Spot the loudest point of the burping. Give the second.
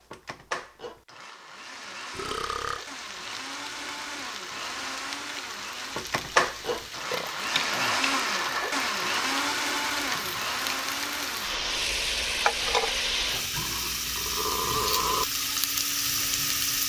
15 s.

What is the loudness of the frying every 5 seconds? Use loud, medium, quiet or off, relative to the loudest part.
quiet, medium, loud, loud.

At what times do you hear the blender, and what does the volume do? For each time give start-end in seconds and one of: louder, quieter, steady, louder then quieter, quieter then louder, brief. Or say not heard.
0.0-16.8 louder then quieter.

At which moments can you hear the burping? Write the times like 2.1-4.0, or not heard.
2.1-2.8, 7.1-8.1, 13.6-15.2.